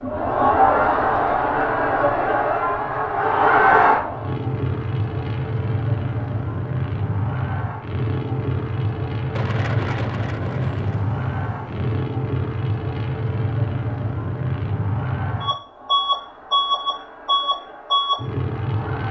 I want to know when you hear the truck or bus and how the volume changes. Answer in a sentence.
You can hear the truck or bus from 0.2 to 19.0 s, getting louder.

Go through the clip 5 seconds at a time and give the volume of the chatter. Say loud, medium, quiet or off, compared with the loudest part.
loud, quiet, quiet, quiet.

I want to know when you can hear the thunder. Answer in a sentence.
You can hear the thunder from 9.3 to 11.9 s.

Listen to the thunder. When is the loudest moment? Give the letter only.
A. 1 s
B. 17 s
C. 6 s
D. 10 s
D.